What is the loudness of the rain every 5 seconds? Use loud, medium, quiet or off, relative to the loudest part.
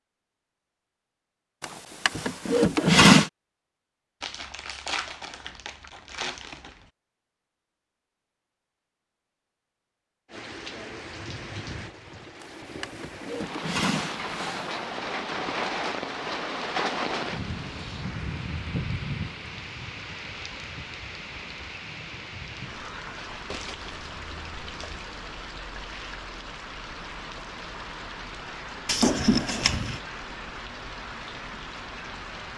off, off, medium, loud, medium, medium, medium.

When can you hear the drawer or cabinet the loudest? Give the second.
3 s.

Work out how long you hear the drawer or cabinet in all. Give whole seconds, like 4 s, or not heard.
5 s.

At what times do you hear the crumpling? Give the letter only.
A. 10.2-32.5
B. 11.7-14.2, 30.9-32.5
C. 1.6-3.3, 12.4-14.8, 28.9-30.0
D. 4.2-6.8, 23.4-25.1
D.